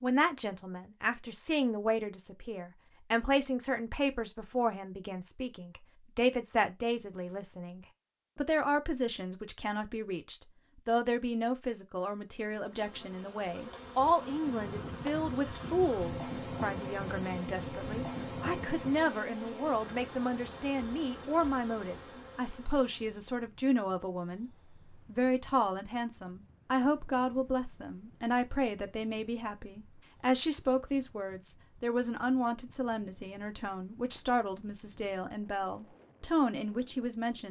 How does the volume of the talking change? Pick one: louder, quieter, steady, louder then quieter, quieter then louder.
steady.